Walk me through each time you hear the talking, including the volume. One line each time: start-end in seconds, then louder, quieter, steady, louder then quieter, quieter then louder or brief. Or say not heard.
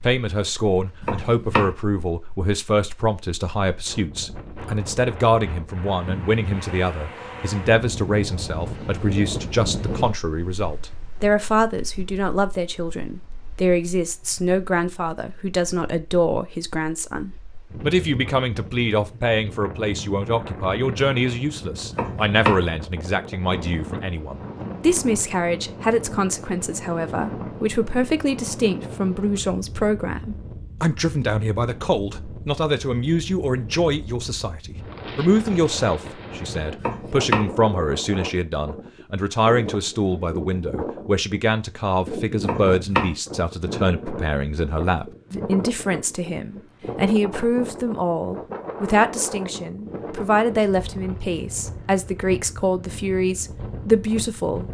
0.0-54.7 steady.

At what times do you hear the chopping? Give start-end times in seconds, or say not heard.
1.0-1.8, 21.9-22.6, 36.8-37.5, 42.4-43.1.